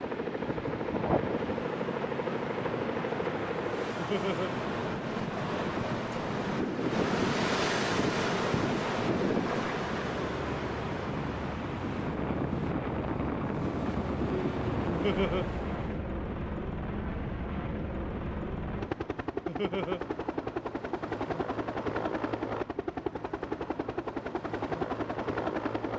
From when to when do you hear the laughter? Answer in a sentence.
You can hear the laughter from 4.0 to 4.5 s, from 14.9 to 15.4 s and from 19.4 to 20.0 s.